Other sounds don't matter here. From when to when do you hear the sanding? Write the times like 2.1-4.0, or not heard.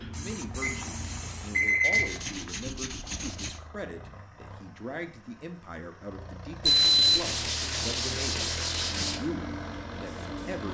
1.8-3.6, 6.7-9.2.